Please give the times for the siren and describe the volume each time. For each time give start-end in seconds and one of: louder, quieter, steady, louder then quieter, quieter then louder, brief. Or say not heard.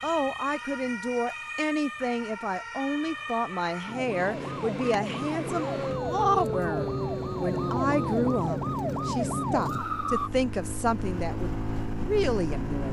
0.0-10.3 louder.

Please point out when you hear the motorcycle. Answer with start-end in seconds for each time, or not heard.
4.0-12.8.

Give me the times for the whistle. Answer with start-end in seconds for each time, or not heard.
not heard.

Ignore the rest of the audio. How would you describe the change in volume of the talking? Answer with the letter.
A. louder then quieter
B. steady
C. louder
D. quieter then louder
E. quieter
B.